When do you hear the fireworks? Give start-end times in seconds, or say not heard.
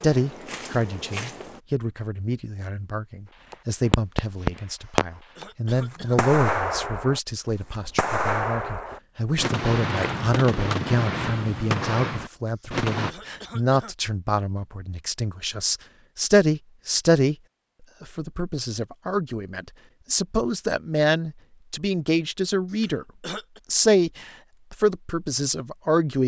3.5-13.2.